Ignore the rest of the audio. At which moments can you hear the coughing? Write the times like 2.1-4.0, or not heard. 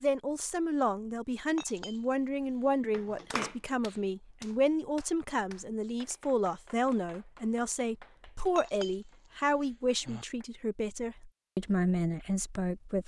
2.9-3.5.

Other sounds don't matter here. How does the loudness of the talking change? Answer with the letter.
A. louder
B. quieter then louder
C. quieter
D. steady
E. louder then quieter
D.